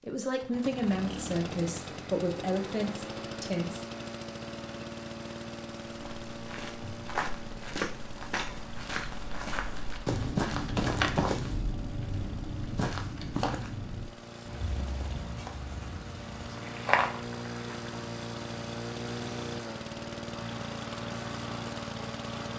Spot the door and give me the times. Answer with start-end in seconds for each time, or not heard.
not heard.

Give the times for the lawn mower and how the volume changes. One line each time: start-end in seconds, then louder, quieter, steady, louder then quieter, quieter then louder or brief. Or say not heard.
0.3-22.5 quieter then louder.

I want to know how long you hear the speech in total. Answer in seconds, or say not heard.
4 s.